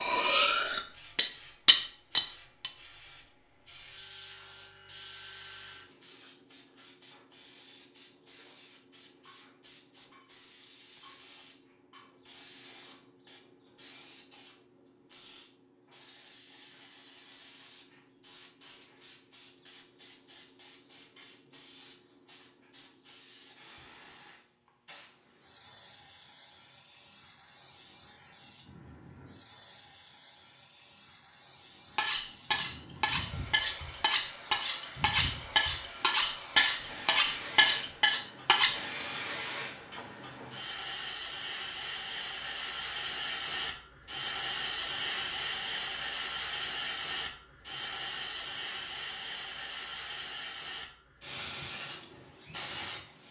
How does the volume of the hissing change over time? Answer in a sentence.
The loudness of the hissing goes up.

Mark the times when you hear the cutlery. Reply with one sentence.
You can hear the cutlery from 0.0 to 2.7 s and from 31.9 to 38.9 s.